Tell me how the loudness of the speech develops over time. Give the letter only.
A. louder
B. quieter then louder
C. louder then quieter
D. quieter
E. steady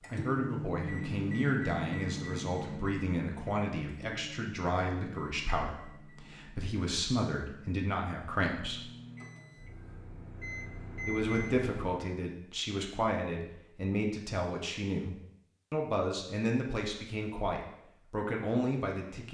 E.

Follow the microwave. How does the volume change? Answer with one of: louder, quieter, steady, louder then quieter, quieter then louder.
quieter then louder.